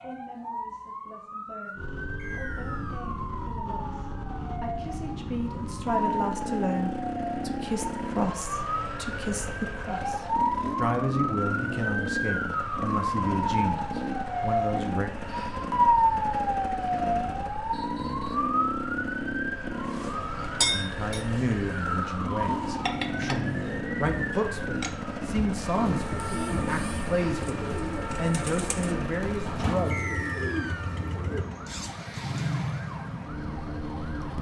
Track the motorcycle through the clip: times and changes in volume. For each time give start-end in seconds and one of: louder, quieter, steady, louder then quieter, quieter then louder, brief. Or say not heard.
1.8-34.3 steady.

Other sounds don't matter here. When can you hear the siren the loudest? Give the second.
16 s.